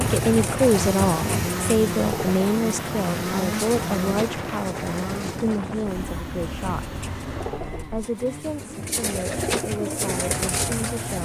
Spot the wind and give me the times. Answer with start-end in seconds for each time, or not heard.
0.0-8.1.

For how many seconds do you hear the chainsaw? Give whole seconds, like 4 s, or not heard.
11 s.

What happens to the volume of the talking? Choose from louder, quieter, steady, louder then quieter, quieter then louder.
quieter.